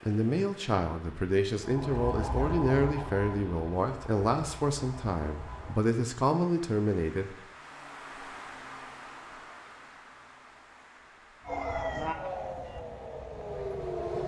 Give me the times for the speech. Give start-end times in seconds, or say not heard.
0.0-7.3.